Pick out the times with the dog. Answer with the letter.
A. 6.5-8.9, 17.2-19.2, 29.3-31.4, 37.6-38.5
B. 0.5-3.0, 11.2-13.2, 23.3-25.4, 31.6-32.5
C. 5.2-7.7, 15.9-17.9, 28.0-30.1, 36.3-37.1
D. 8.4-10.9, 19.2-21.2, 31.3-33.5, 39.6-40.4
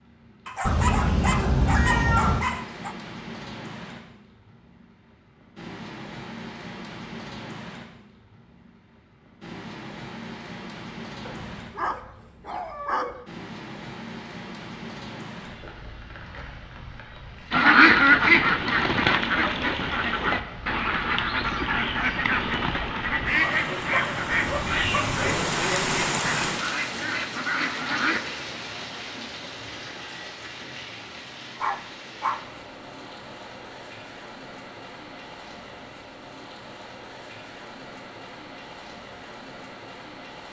B.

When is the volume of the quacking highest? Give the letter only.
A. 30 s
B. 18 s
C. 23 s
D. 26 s
B.